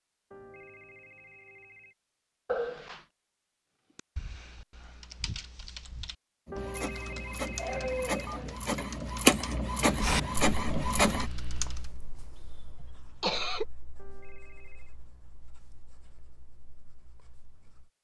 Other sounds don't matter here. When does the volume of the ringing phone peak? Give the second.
7 s.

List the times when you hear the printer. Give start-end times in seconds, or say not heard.
6.5-11.3.